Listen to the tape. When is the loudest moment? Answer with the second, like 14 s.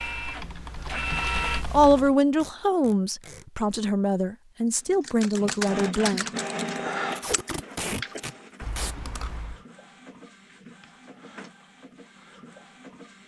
8 s.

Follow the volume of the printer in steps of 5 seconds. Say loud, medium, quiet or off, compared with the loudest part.
loud, loud, quiet.